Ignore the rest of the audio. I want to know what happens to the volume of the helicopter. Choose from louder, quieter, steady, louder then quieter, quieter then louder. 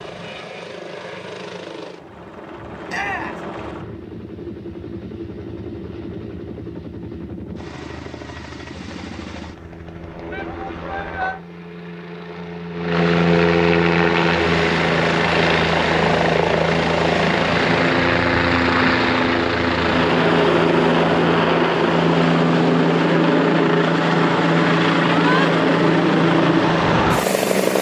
louder.